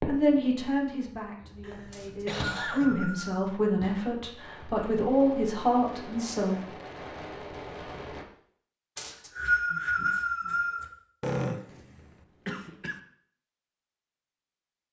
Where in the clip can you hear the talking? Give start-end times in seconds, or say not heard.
0.1-6.6.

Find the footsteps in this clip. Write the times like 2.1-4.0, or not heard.
not heard.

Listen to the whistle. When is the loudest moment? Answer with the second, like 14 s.
10 s.